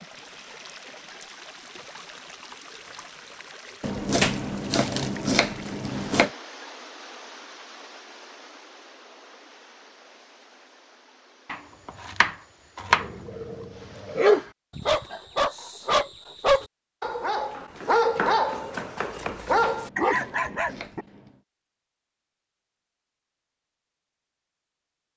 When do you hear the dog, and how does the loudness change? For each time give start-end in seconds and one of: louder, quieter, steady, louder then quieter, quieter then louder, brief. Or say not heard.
12.9-21.1 steady.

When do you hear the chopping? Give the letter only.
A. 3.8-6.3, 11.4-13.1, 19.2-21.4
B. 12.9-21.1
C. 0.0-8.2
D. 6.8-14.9
A.